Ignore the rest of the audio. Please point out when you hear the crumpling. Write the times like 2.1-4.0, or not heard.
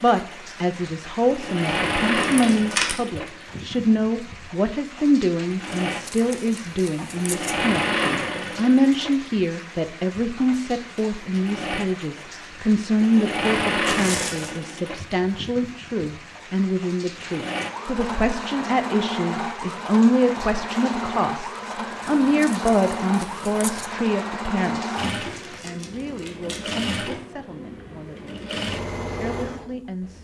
2.2-3.0, 13.8-14.6, 25.4-26.9.